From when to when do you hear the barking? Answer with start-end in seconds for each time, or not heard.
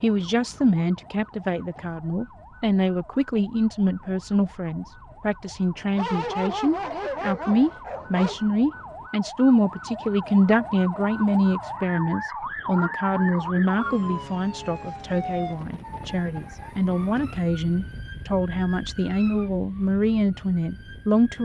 6.0-8.4.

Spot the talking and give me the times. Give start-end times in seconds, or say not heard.
0.0-21.4.